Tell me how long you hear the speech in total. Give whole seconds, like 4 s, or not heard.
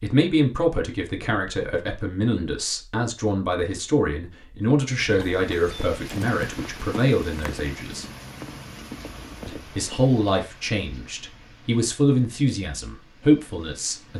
13 s.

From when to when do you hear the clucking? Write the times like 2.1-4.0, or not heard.
not heard.